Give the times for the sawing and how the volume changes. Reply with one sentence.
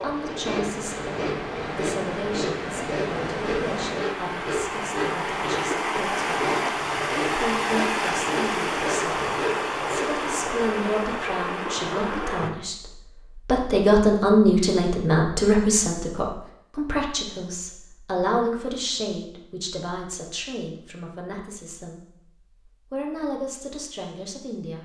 The sawing can be heard from 0.0 to 10.5 s, at a steady volume.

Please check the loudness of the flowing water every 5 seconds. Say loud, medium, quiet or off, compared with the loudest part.
medium, loud, loud, off, off.